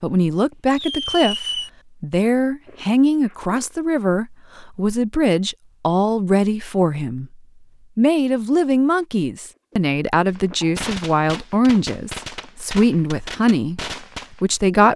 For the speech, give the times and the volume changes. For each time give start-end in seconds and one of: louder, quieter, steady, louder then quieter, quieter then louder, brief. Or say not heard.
0.0-14.9 steady.